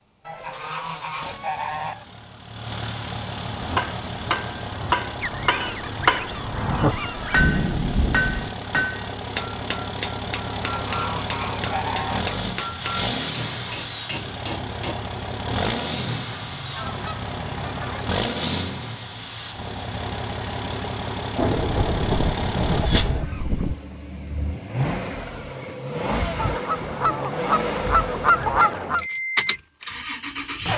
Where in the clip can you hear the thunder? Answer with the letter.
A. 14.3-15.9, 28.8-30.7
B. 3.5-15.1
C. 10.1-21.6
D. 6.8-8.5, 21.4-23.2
D.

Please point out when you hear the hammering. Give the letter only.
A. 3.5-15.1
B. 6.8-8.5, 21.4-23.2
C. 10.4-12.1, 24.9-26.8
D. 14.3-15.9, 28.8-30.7
A.